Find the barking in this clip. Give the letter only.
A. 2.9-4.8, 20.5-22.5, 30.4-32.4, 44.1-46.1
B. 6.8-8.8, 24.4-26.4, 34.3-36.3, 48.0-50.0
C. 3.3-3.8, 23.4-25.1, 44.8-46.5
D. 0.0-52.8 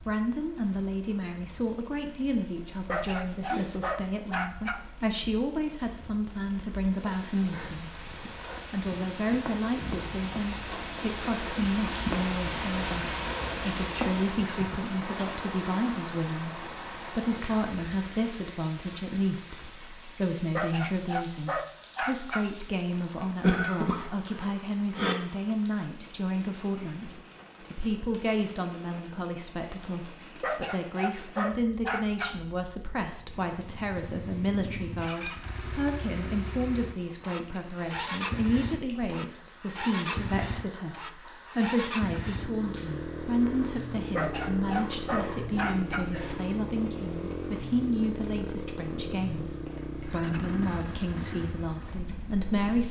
A.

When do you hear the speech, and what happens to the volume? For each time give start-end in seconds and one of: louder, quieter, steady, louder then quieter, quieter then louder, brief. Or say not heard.
0.0-52.8 steady.